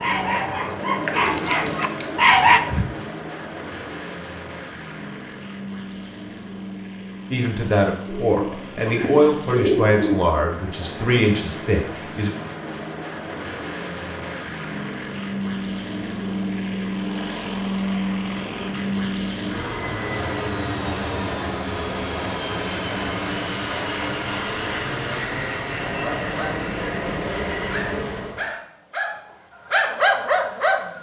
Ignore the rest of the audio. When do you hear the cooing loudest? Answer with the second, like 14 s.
10 s.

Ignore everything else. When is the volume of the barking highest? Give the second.
2 s.